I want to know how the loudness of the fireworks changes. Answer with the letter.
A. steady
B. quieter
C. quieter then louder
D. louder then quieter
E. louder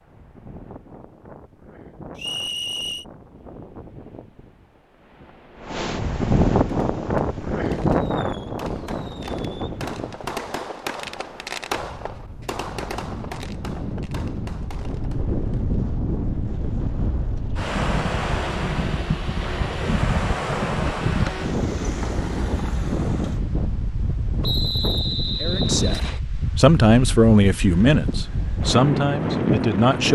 D.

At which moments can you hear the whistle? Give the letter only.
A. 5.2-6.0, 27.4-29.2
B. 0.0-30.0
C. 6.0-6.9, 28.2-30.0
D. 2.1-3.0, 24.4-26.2
D.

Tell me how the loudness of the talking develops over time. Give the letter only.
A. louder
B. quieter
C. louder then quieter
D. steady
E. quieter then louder
C.